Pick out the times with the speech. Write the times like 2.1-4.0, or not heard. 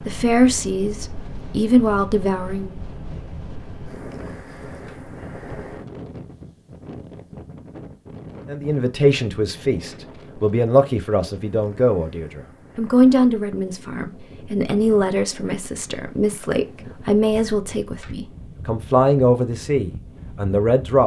0.0-2.8, 8.4-21.0.